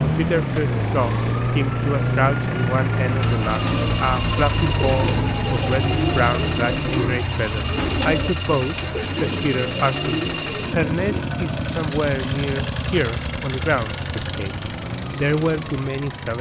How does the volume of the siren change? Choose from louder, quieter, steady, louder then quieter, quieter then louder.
quieter.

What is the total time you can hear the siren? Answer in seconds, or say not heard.
16 s.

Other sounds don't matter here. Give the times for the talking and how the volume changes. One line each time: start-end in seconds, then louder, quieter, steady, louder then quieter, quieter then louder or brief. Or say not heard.
0.0-16.3 steady.